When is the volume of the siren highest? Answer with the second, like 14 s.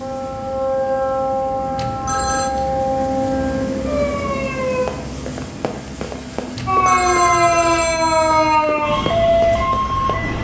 7 s.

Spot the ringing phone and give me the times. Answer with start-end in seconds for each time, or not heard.
1.8-2.5, 6.5-8.6.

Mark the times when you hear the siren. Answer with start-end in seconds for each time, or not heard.
0.0-4.8, 6.7-10.3.